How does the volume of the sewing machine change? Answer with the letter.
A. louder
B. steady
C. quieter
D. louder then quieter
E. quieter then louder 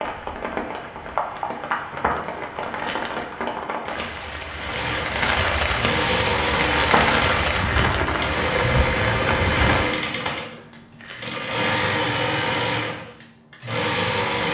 B.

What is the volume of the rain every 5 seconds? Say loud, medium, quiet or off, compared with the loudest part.
medium, loud, off.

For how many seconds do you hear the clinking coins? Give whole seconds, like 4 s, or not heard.
4 s.